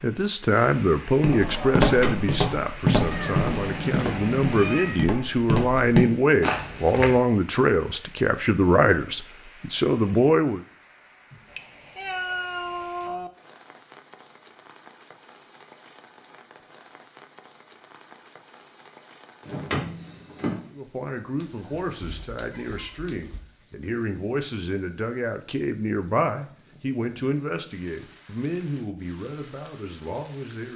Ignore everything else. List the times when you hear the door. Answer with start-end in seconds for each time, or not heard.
1.8-2.4, 19.4-20.6.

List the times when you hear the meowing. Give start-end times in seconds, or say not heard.
3.1-5.0, 11.3-13.3, 21.4-23.4.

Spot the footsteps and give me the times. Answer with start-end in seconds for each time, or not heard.
1.2-7.2.